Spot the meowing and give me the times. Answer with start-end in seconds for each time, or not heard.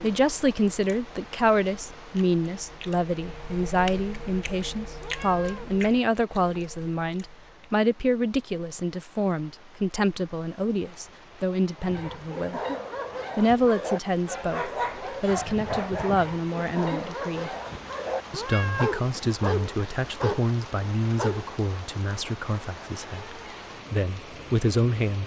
5.0-5.8, 18.3-19.1.